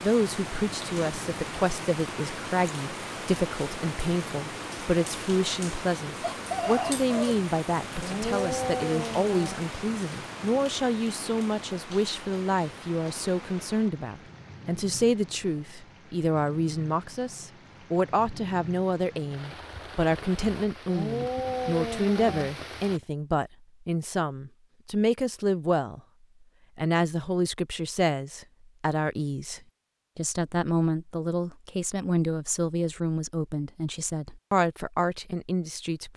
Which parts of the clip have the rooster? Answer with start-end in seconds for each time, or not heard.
6.2-7.4.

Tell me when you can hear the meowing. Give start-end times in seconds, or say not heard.
8.0-9.6, 20.9-22.6.